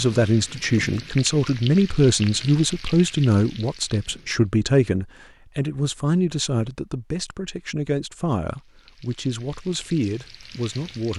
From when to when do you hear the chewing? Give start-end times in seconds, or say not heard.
not heard.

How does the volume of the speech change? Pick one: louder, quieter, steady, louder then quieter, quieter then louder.
quieter.